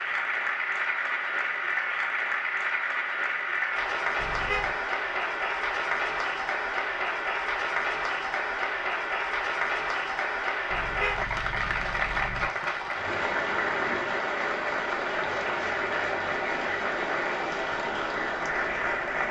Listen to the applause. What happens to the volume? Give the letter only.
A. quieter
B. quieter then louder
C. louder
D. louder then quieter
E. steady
E.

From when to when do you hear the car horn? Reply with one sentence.
The car horn can be heard from 4.2 to 4.8 s and from 10.7 to 12.5 s.